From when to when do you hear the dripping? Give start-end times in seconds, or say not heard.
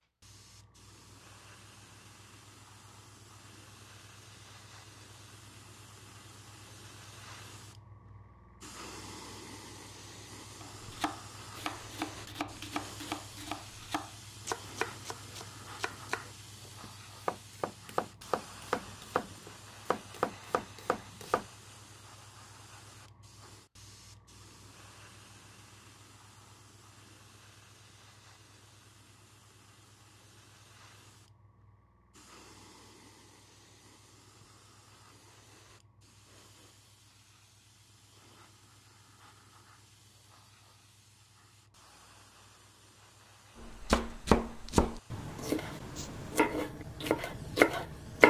not heard.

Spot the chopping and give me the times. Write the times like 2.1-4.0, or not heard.
10.6-21.4, 43.6-48.2.